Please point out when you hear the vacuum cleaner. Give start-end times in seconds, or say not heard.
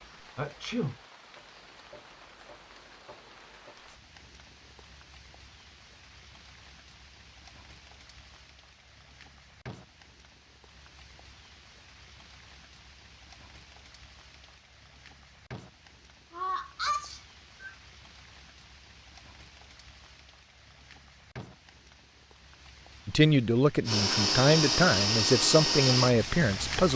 23.9-26.8.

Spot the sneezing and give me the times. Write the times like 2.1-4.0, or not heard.
0.3-0.9, 16.3-17.8.